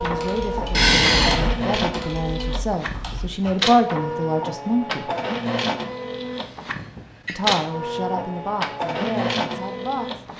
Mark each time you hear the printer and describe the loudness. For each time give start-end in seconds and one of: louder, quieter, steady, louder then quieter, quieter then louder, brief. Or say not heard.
0.0-10.3 steady.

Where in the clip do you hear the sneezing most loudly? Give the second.
1 s.